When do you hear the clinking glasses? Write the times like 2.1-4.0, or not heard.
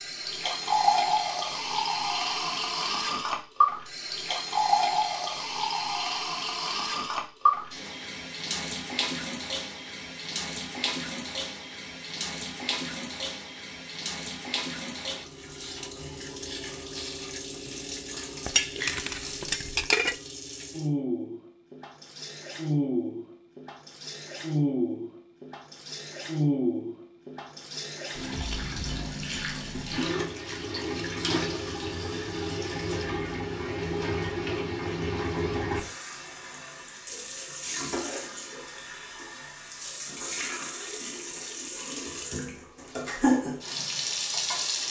18.4-20.1.